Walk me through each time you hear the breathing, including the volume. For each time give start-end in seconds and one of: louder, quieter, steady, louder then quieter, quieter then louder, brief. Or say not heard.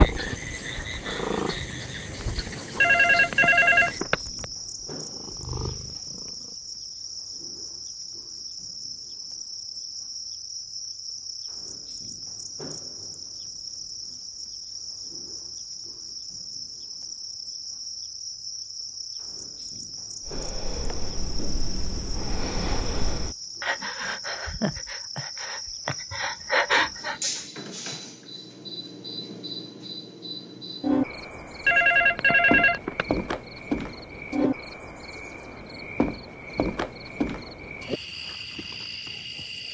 20.2-27.4 louder.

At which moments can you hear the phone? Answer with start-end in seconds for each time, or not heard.
2.8-4.2, 31.6-33.0.